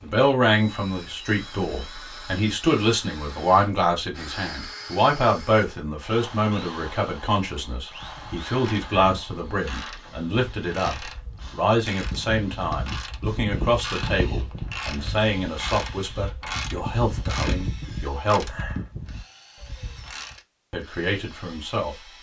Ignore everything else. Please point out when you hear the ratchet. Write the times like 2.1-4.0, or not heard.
7.9-20.4.